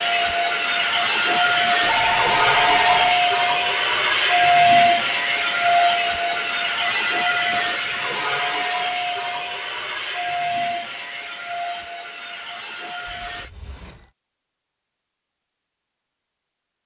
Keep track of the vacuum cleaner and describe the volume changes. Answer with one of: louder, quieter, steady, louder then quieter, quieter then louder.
quieter.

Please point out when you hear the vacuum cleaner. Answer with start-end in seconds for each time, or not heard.
0.0-13.5.